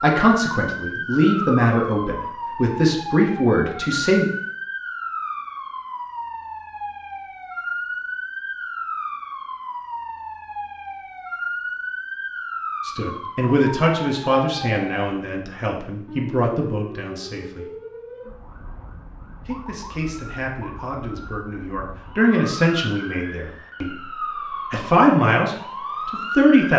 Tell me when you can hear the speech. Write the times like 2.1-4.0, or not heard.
0.0-4.3, 12.8-17.8, 19.4-24.1, 24.7-26.7.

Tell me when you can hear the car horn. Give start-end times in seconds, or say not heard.
not heard.